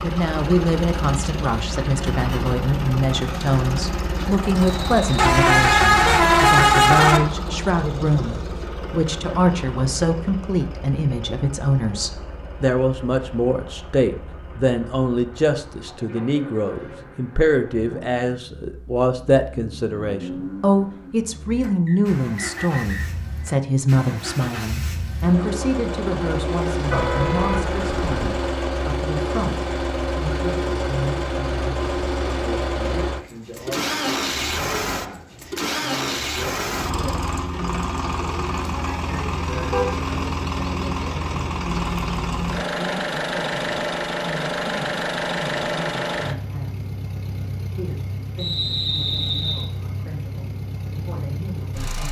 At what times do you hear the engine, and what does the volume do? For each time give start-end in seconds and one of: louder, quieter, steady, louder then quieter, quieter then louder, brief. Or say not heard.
0.0-52.0 quieter then louder.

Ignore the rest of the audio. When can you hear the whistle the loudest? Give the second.
49 s.